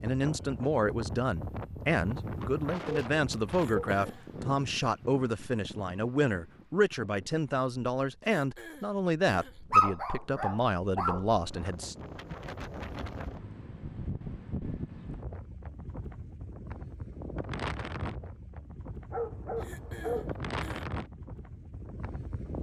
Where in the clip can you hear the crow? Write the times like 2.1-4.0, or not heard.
not heard.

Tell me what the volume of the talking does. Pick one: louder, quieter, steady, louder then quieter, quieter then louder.
steady.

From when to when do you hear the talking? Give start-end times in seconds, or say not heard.
0.0-11.9.